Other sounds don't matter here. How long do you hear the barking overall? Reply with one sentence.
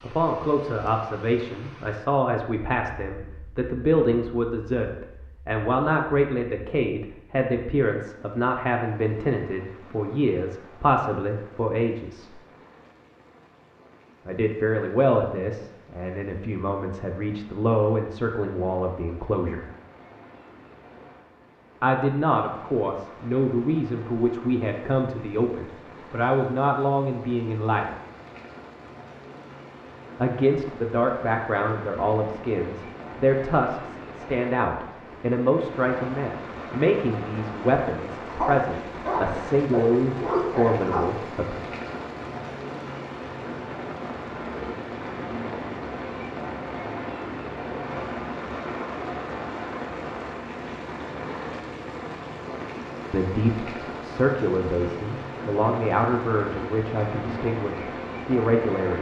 The barking can be heard for 3 seconds in total.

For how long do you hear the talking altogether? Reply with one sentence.
You can hear the talking for 41 seconds altogether.